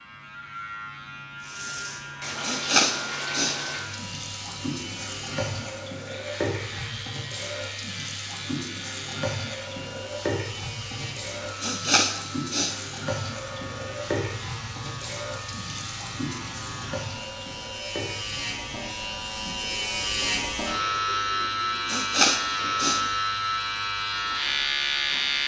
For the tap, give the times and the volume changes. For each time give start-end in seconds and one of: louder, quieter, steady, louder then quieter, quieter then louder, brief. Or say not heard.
1.4-25.4 quieter.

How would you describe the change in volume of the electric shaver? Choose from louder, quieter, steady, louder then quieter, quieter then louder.
louder.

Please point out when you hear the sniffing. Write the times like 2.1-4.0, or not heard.
2.4-3.5, 11.6-12.8, 21.9-23.0.